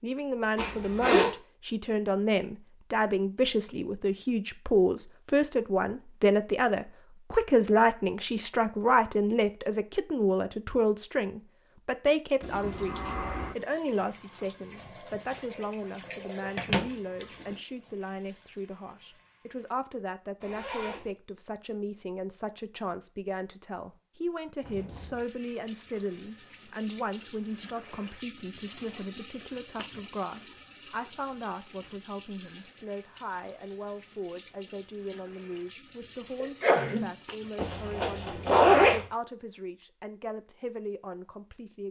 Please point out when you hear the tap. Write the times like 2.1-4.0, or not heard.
12.4-19.7, 24.6-37.8.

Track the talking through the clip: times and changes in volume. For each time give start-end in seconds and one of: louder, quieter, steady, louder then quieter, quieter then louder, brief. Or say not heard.
0.0-41.8 quieter.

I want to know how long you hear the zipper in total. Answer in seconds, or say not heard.
3 s.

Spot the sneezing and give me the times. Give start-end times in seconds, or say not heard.
36.4-37.1.